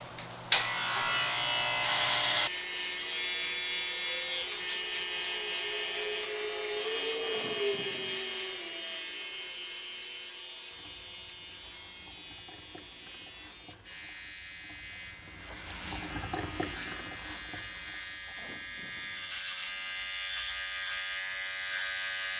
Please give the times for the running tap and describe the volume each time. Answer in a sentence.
You can hear the running tap from 10.7 to 20.1 s, getting louder then quieter.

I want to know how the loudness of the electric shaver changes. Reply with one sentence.
The loudness of the electric shaver goes down, then up.